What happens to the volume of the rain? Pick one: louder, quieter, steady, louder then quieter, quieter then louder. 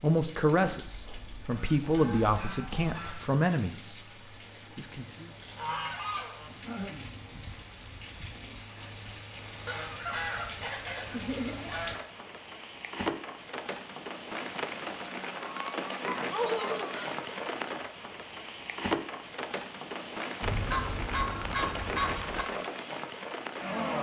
louder.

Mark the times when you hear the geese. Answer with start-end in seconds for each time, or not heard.
0.8-3.2, 5.5-7.1, 9.7-12.0, 15.0-17.1, 20.4-22.4.